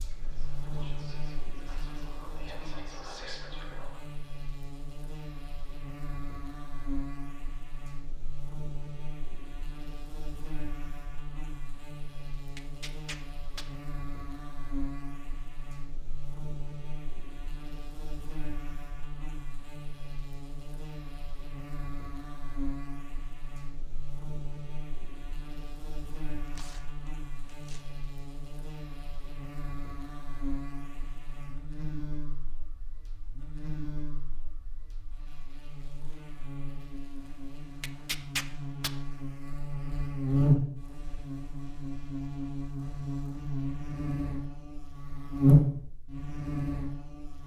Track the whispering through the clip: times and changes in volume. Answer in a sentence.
The whispering can be heard from 0.0 to 4.2 s, getting louder.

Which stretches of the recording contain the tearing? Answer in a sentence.
The tearing can be heard from 12.6 to 13.7 s, from 26.4 to 27.9 s and from 37.8 to 38.9 s.